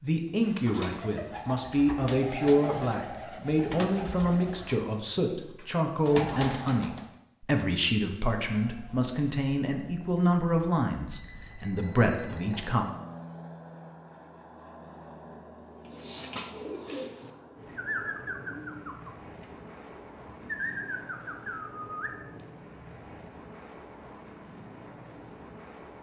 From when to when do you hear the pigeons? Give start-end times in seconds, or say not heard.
0.3-7.1, 15.8-22.3.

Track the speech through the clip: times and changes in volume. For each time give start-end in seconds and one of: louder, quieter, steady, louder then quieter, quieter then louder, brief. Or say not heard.
0.0-12.8 steady.